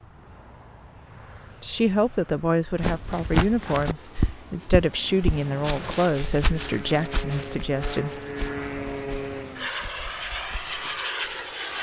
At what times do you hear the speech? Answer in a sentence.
You can hear the speech from 1.6 to 8.2 s.